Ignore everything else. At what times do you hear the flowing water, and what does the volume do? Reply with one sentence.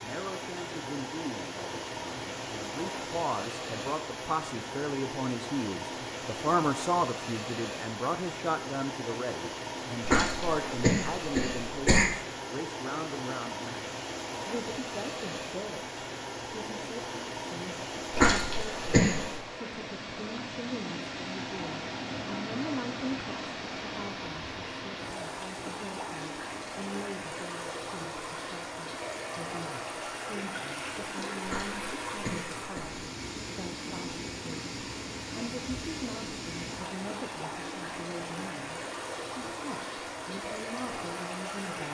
The flowing water can be heard from 0.0 to 41.8 s, at a steady volume.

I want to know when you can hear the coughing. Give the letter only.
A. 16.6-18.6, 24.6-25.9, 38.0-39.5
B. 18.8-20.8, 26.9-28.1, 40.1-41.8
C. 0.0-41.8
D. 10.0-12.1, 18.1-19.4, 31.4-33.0
D.